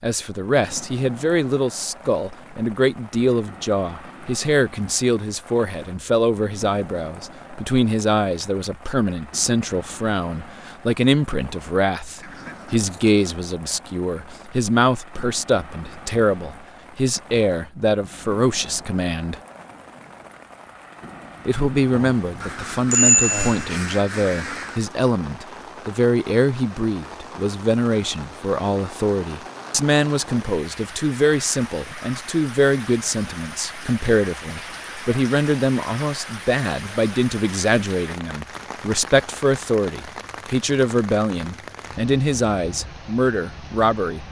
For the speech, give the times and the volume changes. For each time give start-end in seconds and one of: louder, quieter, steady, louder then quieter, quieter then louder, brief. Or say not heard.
0.0-19.4 steady
21.4-44.2 steady.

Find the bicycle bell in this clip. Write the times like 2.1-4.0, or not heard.
21.9-23.8.